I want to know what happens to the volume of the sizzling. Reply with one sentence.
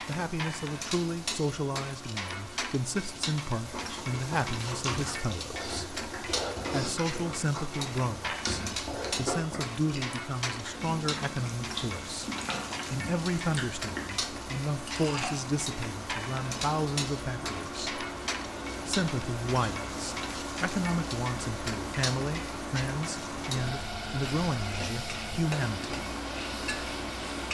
The volume of the sizzling stays about the same.